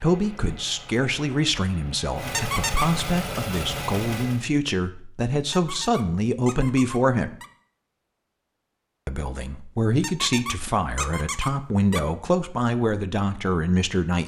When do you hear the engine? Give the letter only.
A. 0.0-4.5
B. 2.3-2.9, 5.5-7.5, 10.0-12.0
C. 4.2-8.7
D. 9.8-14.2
A.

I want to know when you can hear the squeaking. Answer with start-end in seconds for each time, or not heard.
2.3-2.9, 5.5-7.5, 10.0-12.0.